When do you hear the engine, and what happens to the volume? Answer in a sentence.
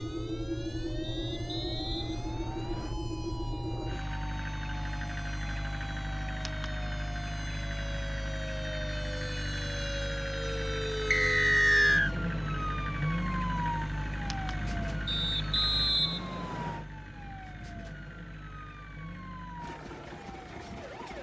The engine can be heard from 0.0 to 21.1 s, getting quieter.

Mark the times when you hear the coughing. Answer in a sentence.
The coughing can't be heard in this clip.